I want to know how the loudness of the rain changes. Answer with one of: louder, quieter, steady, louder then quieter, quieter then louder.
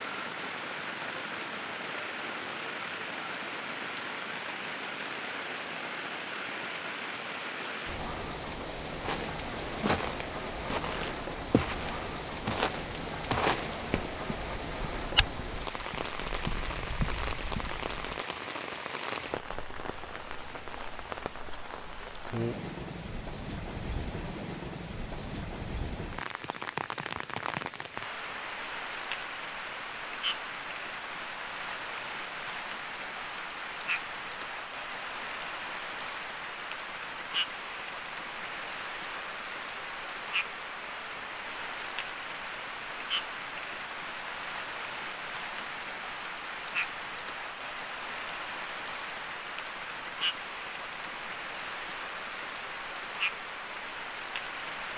steady.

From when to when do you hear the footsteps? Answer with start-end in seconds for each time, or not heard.
8.9-18.1.